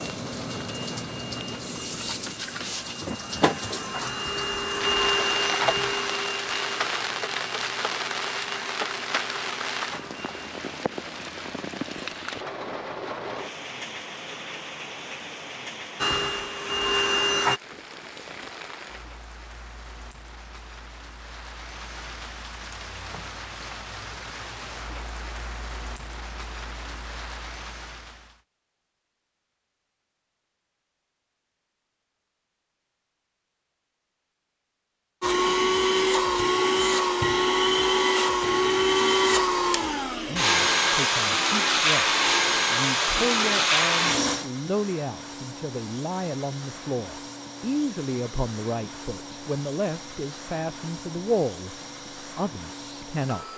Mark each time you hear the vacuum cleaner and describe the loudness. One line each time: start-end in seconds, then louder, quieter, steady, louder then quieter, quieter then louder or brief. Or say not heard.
0.0-10.6 louder then quieter
16.0-17.6 brief
35.2-53.5 quieter.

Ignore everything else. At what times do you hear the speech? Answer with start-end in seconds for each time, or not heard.
40.2-51.8, 52.4-53.5.